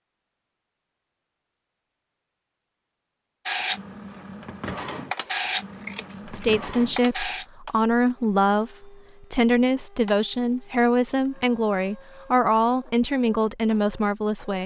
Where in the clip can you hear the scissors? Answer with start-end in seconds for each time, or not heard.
5.8-6.5.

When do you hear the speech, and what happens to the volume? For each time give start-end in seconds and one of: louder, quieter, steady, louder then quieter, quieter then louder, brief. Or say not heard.
6.2-14.6 steady.